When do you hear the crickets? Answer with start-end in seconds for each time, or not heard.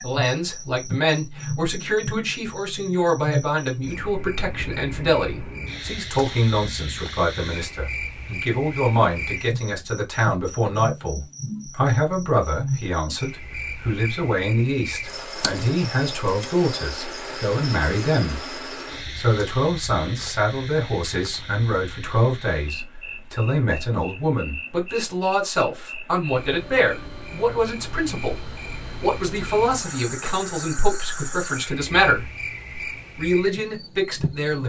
0.0-34.6.